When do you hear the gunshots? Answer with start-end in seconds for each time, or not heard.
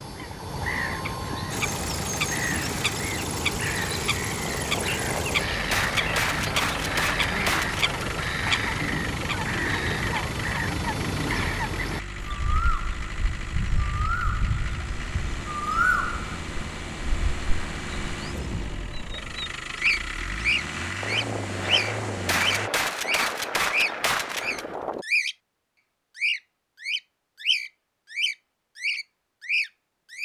4.5-8.3, 21.0-25.1.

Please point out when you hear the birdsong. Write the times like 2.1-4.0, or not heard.
0.0-25.4, 26.1-30.1.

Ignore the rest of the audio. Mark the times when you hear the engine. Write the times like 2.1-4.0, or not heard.
1.5-22.7.